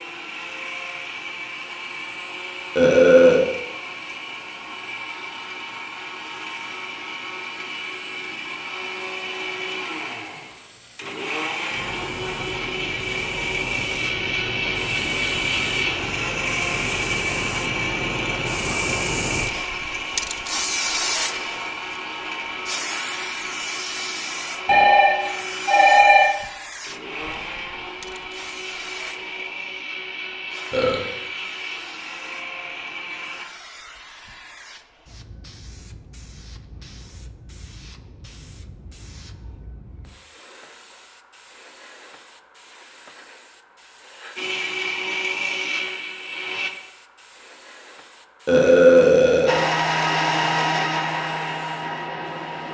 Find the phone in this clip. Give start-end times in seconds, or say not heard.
24.6-26.3.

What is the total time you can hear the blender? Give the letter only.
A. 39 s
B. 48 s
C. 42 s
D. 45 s
A.